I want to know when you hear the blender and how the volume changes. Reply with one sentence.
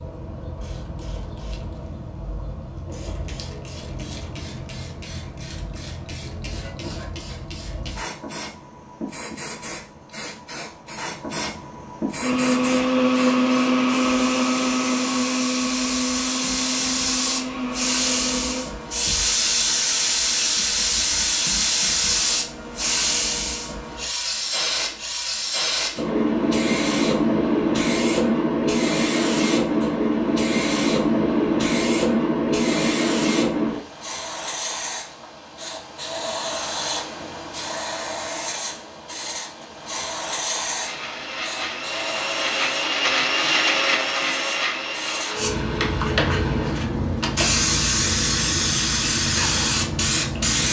You can hear the blender from 12.2 to 18.7 s, getting quieter; and from 40.8 to 46.8 s, getting louder then quieter.